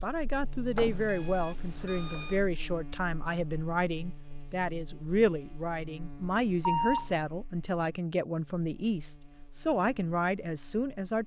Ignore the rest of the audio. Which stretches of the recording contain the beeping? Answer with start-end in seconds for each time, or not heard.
0.8-2.4, 6.6-7.1.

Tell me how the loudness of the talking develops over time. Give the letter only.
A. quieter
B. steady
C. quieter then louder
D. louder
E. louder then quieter
B.